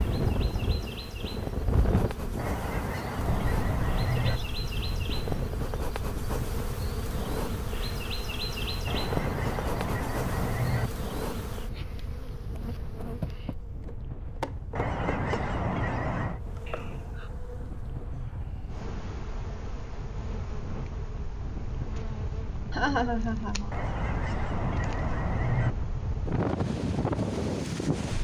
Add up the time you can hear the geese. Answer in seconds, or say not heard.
8 s.